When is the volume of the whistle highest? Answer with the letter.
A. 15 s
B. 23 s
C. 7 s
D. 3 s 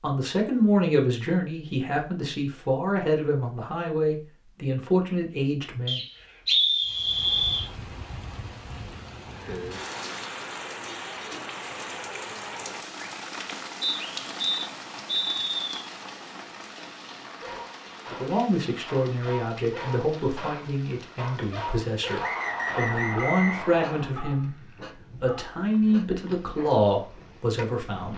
C.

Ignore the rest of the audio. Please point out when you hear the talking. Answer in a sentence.
You can hear the talking from 0.0 to 6.0 s and from 18.1 to 28.1 s.